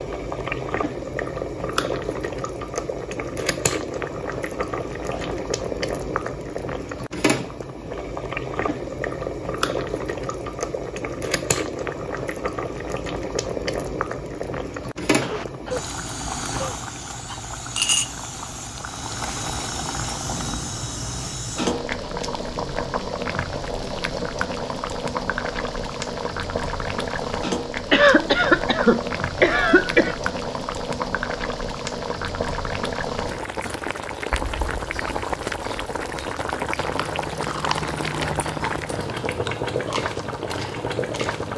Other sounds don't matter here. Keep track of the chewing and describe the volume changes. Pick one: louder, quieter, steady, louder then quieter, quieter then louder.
quieter.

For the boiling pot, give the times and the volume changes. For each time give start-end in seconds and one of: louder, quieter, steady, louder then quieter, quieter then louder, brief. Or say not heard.
0.0-41.5 steady.